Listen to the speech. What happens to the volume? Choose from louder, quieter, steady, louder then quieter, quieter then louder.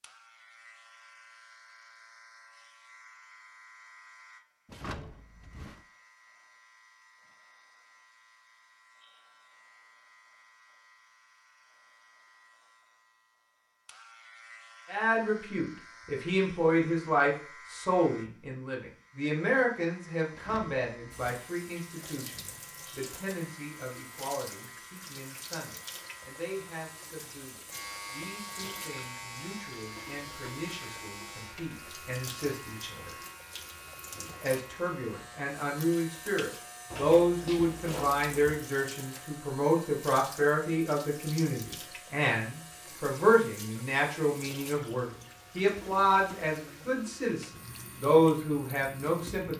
quieter then louder.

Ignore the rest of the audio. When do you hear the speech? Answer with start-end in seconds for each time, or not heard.
14.8-33.1, 34.1-49.5.